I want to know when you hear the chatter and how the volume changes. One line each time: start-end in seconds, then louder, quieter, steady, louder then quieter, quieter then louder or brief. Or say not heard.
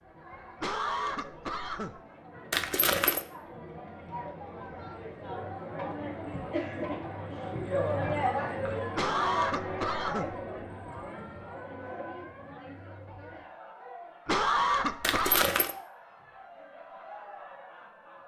0.0-18.2 louder then quieter.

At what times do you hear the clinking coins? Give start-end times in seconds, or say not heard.
2.5-3.2, 15.0-15.8.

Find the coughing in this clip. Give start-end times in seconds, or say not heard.
0.6-2.0, 8.9-10.3, 14.2-15.4.